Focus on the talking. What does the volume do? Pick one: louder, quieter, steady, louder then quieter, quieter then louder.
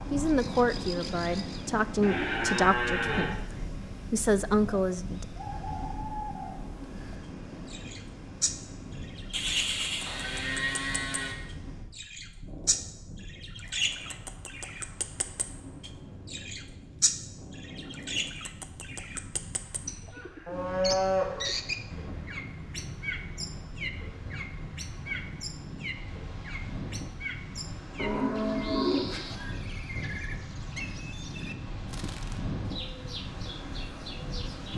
quieter then louder.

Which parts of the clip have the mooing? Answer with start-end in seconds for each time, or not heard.
2.0-3.6, 9.3-11.3, 20.4-21.5, 27.9-29.6.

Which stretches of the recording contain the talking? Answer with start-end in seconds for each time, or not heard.
0.1-5.2.